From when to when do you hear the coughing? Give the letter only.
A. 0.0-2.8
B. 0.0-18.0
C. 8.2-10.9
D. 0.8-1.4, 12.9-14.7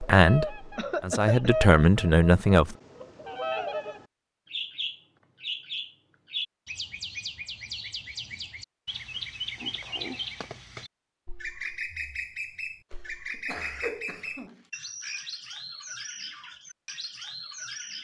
D.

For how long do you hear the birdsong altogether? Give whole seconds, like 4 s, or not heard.
18 s.